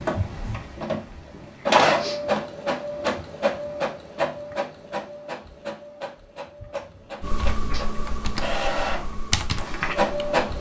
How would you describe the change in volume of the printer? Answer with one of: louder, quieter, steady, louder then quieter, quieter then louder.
quieter then louder.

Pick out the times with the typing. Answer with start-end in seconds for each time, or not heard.
7.2-10.4.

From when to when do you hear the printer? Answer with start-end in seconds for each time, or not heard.
0.0-10.5.